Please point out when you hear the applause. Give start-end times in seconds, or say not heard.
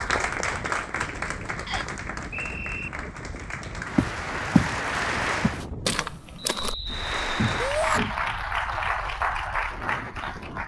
0.0-5.7, 6.8-10.6.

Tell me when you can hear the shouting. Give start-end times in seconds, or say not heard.
7.6-8.0.